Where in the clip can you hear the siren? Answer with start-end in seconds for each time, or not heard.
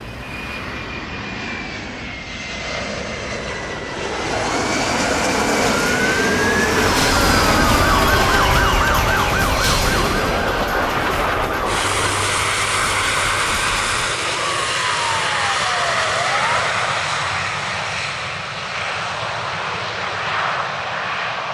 4.1-16.8.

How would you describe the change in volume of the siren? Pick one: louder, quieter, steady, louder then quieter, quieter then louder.
louder then quieter.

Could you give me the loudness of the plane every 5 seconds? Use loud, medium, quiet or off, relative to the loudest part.
medium, loud, loud, loud, loud.